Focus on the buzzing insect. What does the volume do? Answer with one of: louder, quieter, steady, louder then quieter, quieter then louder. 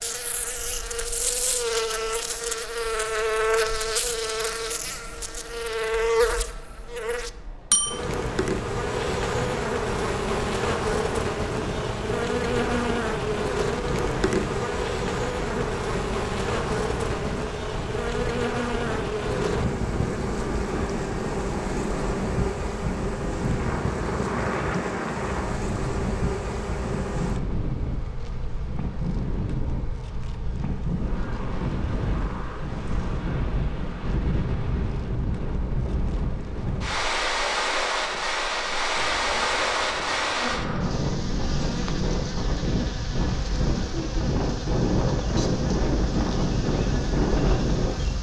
quieter then louder.